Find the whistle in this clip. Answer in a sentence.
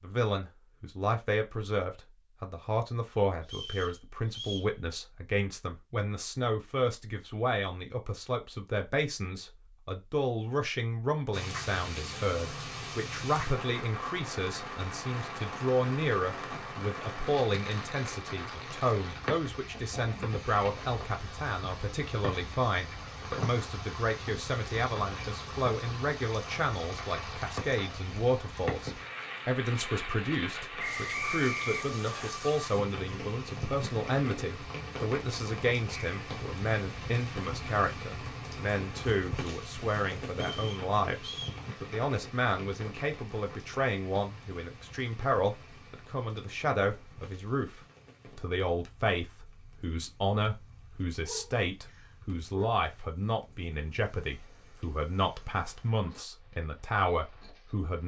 You can hear the whistle from 3.4 to 4.7 s, from 30.8 to 32.3 s and from 40.3 to 41.6 s.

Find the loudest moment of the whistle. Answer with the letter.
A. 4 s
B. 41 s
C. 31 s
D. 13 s
C.